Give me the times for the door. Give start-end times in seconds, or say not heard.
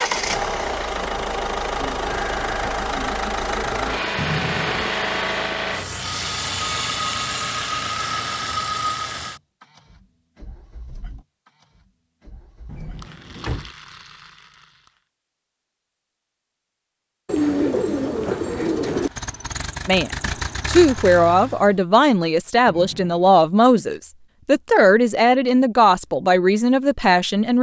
4.2-4.9, 12.7-13.7, 22.6-23.2.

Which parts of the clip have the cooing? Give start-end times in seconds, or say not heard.
1.8-4.1, 17.2-19.1.